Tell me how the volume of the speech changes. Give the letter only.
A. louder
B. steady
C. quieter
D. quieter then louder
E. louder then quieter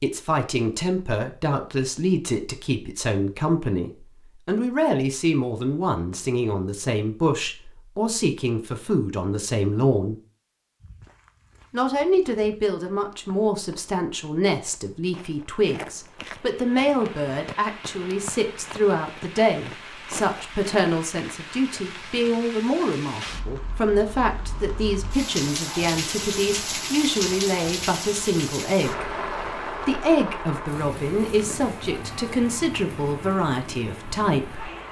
B.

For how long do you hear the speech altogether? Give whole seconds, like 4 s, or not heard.
32 s.